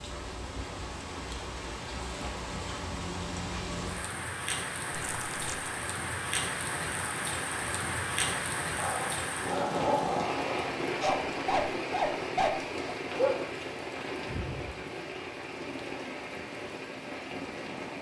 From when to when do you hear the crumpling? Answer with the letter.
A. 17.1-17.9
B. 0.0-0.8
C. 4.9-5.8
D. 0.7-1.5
C.